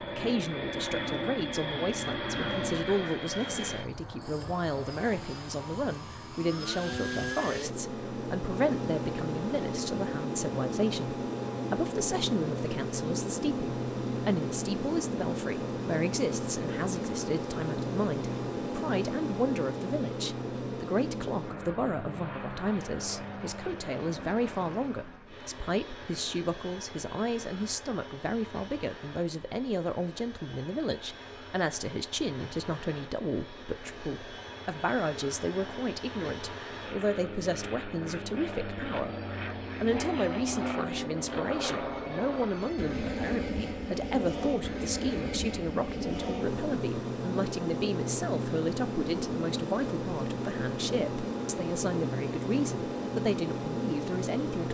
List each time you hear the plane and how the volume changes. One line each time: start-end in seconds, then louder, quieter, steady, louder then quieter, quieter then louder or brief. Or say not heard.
0.0-54.6 quieter then louder.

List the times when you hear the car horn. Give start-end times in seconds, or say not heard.
not heard.